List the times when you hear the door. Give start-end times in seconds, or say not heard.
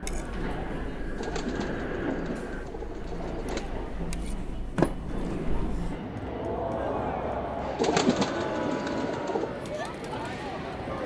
4.8-6.2.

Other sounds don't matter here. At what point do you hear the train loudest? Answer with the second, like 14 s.
2 s.